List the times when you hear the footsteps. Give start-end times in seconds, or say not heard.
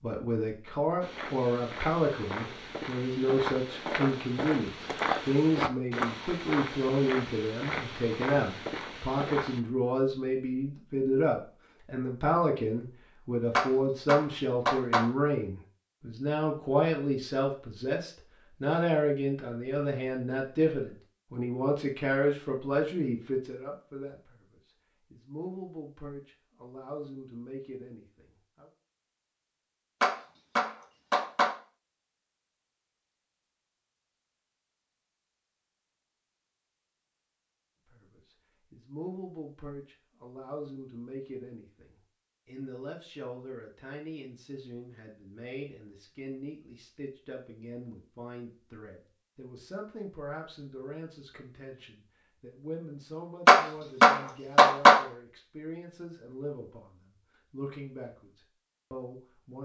1.0-9.6.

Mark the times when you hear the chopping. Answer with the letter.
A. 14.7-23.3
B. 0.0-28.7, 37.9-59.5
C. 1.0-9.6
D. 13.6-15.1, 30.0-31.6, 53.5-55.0
D.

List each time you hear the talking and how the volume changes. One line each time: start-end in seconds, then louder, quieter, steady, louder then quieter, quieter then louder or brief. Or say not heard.
0.0-28.7 quieter
37.9-59.5 steady.